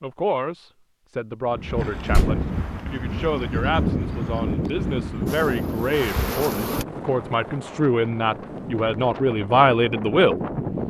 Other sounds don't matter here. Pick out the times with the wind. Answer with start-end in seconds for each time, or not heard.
1.5-10.8.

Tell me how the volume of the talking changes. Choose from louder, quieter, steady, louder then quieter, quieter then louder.
louder.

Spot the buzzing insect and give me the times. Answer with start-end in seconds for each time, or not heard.
5.2-6.8.